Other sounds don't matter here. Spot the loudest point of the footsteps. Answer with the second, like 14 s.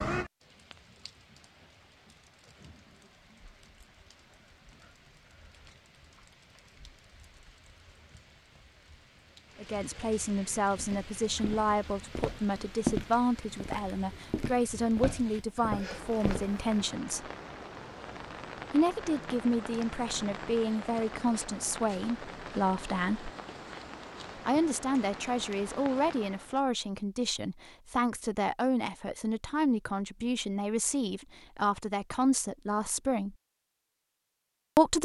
13 s.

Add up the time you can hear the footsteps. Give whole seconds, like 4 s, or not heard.
6 s.